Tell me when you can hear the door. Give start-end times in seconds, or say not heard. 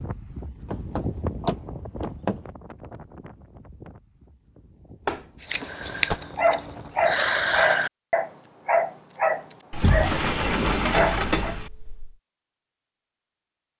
0.7-2.4, 5.0-6.2, 9.7-12.2.